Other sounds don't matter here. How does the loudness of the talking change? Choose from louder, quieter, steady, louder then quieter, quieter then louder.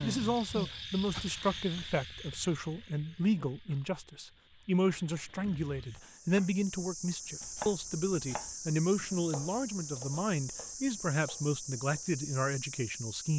steady.